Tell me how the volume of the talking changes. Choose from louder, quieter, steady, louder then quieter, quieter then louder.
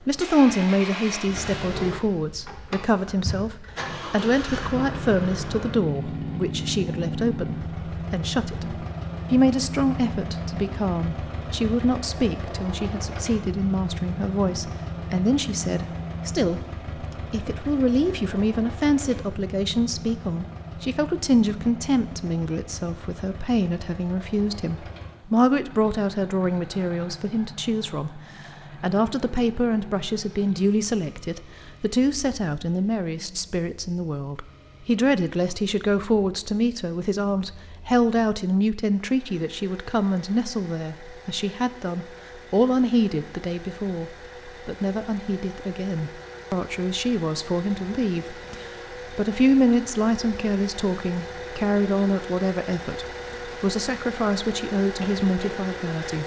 steady.